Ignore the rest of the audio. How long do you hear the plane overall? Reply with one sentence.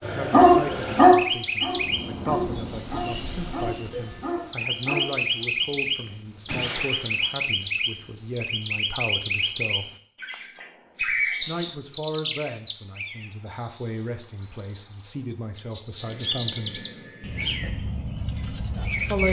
You can hear the plane for 4 seconds altogether.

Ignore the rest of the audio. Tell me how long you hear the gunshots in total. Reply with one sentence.
You can hear the gunshots for 2 seconds altogether.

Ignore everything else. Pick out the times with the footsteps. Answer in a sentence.
You can't hear the footsteps here.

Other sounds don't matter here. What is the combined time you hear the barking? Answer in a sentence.
You can hear the barking for 5 seconds altogether.